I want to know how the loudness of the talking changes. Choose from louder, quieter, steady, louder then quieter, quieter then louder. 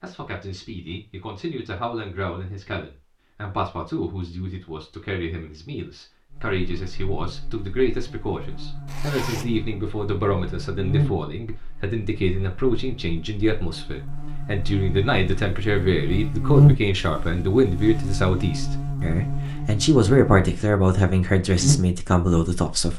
louder.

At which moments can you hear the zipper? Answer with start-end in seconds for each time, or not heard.
8.8-9.6.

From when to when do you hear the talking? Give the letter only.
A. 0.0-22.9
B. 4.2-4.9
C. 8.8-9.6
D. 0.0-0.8
A.